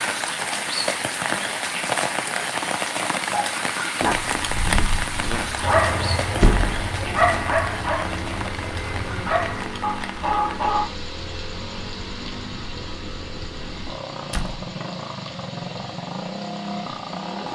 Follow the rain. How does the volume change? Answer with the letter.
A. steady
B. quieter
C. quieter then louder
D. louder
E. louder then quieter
B.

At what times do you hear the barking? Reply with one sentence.
You can hear the barking from 3.3 to 10.9 s.